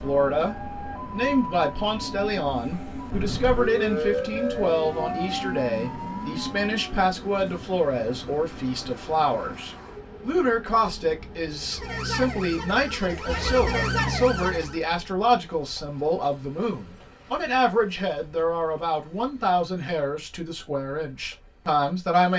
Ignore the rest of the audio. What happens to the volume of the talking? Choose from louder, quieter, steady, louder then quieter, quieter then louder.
steady.